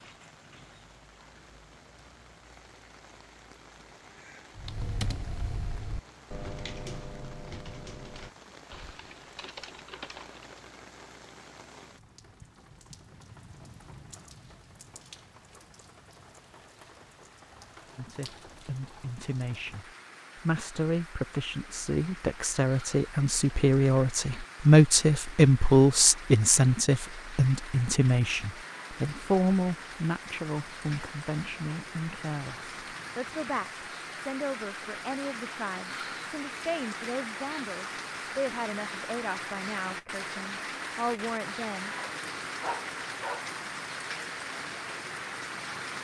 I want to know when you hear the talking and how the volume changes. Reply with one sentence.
You can hear the talking from 17.9 to 42.0 s, getting louder then quieter.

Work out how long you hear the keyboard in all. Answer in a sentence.
You can hear the keyboard for 6 seconds altogether.